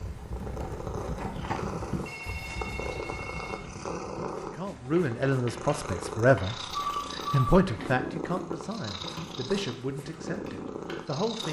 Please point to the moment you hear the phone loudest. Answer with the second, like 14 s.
7 s.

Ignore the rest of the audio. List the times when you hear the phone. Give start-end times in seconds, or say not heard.
2.0-3.6, 6.7-7.7.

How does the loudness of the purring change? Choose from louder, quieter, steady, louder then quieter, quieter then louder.
steady.